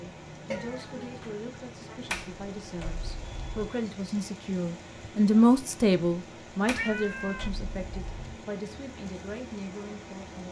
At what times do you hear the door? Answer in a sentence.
The door can be heard from 2.0 to 3.7 s and from 6.7 to 8.4 s.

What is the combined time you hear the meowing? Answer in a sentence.
The meowing can be heard for 2 seconds in total.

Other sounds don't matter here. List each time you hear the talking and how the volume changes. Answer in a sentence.
You can hear the talking from 0.0 to 10.4 s, getting louder then quieter.